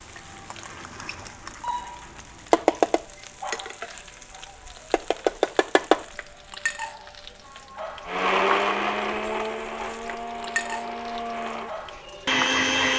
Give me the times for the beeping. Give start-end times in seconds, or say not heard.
not heard.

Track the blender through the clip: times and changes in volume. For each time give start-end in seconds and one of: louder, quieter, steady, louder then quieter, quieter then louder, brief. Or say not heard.
8.1-12.9 quieter then louder.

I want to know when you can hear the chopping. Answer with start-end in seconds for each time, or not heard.
not heard.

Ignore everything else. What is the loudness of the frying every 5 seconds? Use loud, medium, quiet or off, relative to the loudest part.
loud, loud, medium.